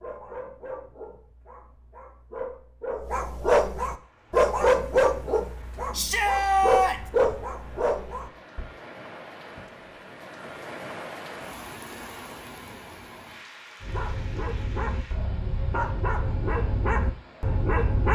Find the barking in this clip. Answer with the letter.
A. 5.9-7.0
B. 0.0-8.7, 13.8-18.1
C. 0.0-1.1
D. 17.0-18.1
B.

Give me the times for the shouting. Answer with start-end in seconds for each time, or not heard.
5.9-7.0.